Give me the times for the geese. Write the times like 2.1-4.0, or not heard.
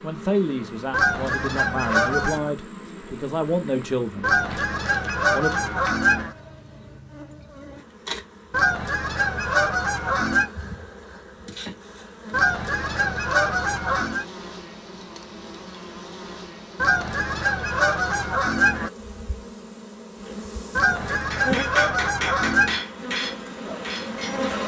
0.9-2.5, 4.2-6.3, 8.5-10.5, 12.3-14.2, 16.8-18.9, 20.8-22.9.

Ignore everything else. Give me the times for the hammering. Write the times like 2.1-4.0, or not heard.
21.1-24.6.